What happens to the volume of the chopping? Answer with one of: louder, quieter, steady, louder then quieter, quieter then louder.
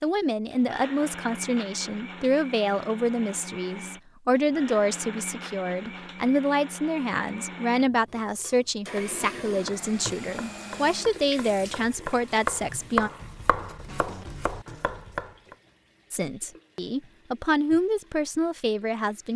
louder then quieter.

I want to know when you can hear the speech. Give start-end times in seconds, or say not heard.
0.0-13.1, 16.1-19.3.